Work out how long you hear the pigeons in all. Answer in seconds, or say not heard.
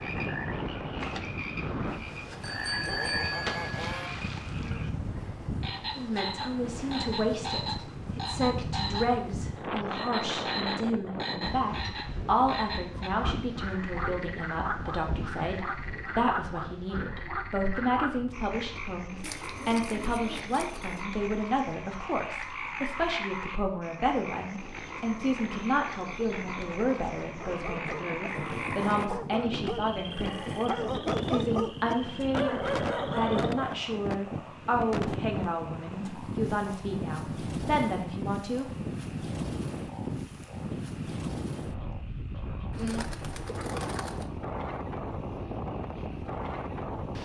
3 s.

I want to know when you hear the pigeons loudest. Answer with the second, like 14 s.
43 s.